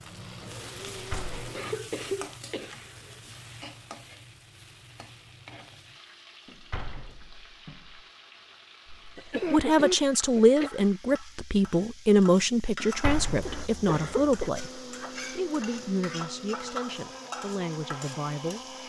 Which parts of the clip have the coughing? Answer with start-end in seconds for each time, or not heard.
1.6-3.2, 9.2-10.7, 13.4-14.5.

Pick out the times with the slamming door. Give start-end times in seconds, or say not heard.
0.9-1.5, 6.5-8.1, 12.8-13.7.